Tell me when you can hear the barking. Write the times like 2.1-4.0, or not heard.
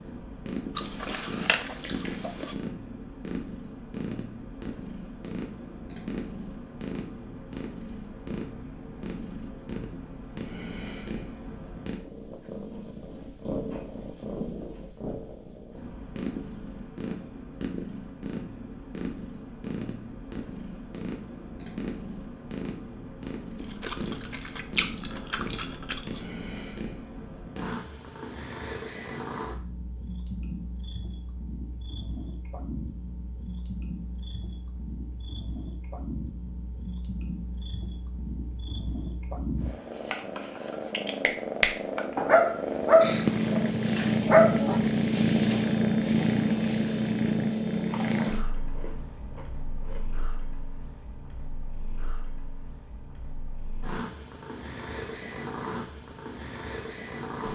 42.1-44.8.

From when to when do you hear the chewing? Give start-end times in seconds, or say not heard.
0.8-2.5, 23.6-26.2, 47.8-50.0.